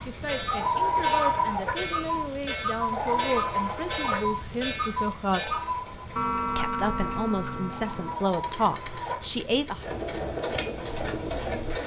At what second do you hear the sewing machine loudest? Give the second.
1 s.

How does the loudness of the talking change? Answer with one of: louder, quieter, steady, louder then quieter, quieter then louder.
louder.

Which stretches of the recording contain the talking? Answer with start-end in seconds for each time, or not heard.
0.0-5.5, 6.5-9.8.